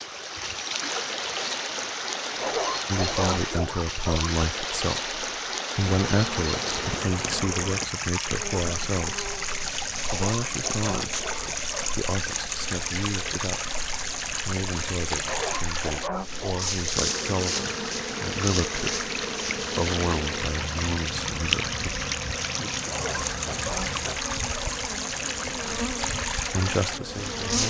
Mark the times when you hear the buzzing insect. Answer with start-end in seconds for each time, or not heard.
5.8-27.6.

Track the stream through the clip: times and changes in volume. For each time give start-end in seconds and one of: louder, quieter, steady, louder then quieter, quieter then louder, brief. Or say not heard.
0.0-27.6 steady.